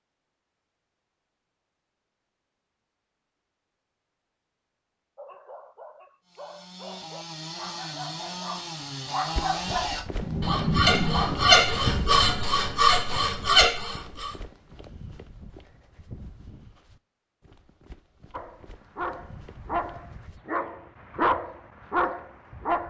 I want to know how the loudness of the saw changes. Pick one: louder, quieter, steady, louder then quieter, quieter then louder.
louder.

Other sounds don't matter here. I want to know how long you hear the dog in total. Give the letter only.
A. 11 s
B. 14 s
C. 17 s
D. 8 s
A.